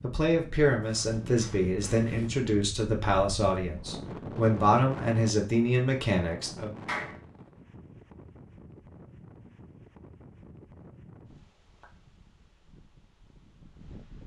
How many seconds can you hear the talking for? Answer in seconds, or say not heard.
7 s.